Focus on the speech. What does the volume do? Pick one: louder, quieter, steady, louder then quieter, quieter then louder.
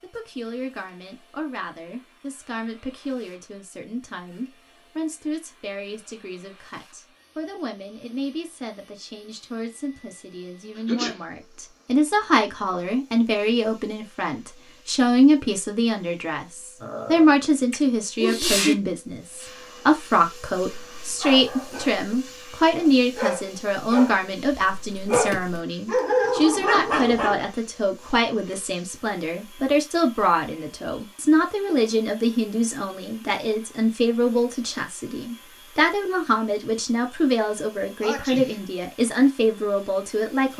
louder.